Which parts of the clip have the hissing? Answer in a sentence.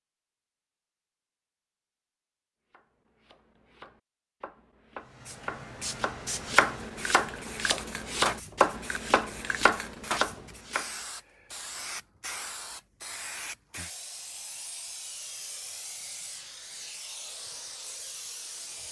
You can hear the hissing from 5.0 to 18.8 s.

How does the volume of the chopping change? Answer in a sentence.
The volume of the chopping goes up.